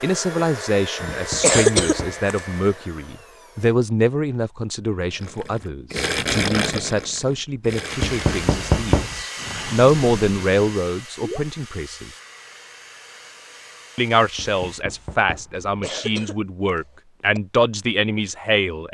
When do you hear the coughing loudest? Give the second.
2 s.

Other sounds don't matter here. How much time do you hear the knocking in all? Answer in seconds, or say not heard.
4 s.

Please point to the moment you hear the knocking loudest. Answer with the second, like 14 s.
9 s.